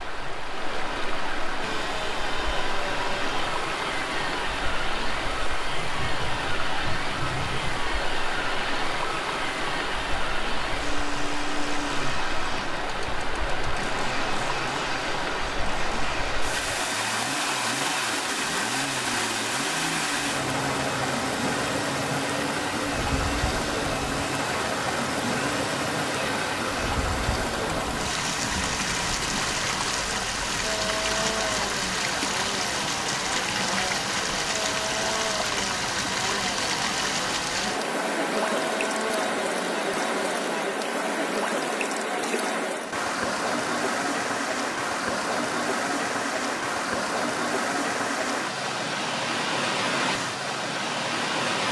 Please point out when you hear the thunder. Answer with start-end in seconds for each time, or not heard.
5.8-7.8.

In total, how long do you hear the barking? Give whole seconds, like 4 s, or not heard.
not heard.